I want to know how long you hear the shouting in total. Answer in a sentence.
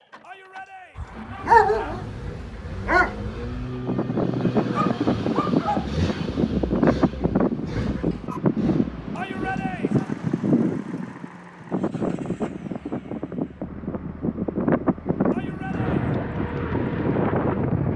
You can hear the shouting for 3 seconds altogether.